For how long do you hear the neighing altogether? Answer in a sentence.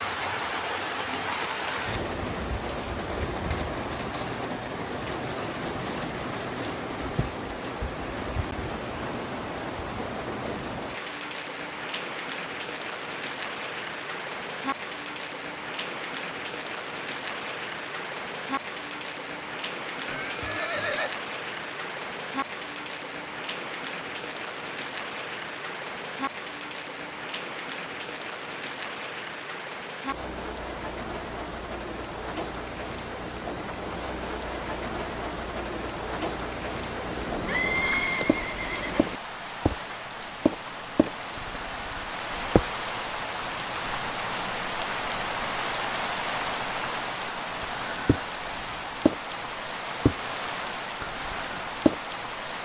You can hear the neighing for 3 seconds altogether.